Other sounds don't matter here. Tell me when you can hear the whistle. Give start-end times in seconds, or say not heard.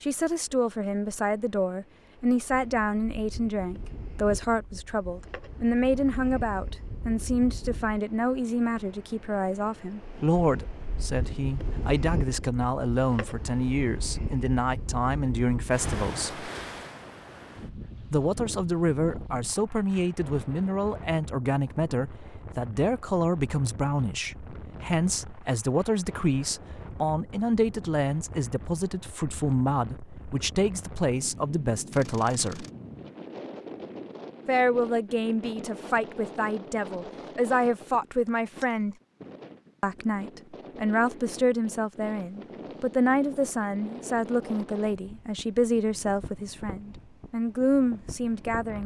not heard.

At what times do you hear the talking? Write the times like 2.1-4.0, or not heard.
0.0-16.4, 18.1-32.6, 34.5-39.0, 39.8-48.8.